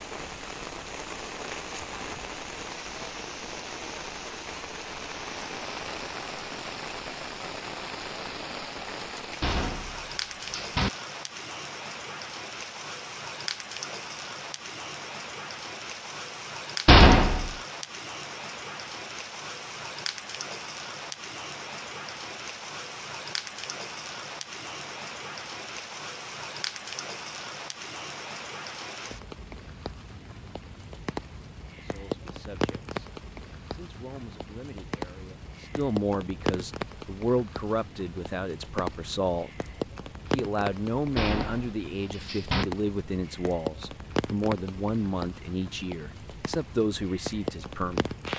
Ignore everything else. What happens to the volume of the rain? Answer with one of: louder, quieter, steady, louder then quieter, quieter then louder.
steady.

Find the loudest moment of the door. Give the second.
17 s.